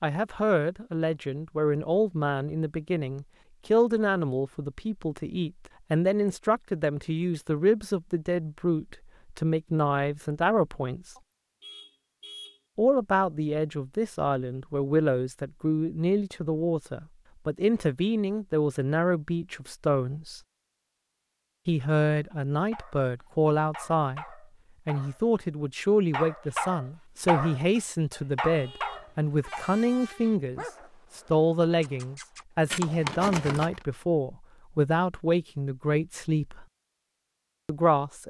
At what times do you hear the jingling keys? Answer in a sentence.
You can hear the jingling keys from 32.7 to 33.9 s.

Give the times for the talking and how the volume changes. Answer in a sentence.
You can hear the talking from 0.0 to 11.0 s, at a steady volume; from 12.8 to 20.4 s, at a steady volume; from 21.6 to 36.6 s, at a steady volume; and briefly from 37.6 to 38.2 s.